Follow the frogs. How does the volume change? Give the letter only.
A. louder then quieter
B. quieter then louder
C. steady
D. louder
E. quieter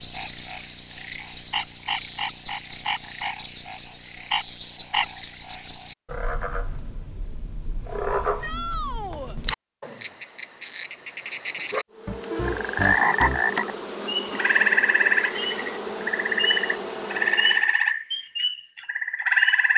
D.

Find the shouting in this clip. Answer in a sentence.
You can hear the shouting from 8.4 to 9.3 s.